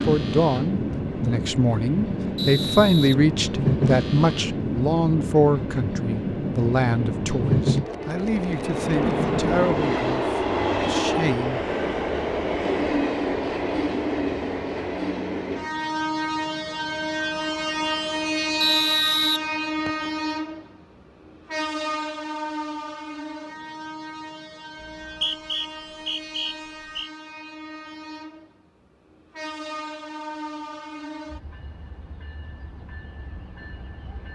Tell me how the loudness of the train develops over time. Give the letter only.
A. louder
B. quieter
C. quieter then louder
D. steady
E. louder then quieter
B.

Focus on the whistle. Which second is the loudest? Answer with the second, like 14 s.
19 s.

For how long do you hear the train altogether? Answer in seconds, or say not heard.
34 s.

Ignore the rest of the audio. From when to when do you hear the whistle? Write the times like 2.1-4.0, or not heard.
2.4-3.1, 18.6-20.1, 24.8-27.1.